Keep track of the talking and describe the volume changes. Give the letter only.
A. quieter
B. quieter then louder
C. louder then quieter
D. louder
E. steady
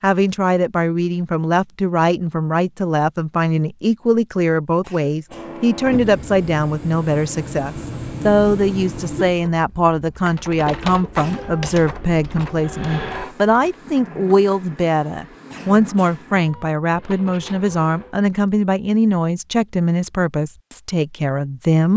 E.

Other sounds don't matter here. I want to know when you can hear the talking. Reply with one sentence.
You can hear the talking from 0.0 to 21.9 s.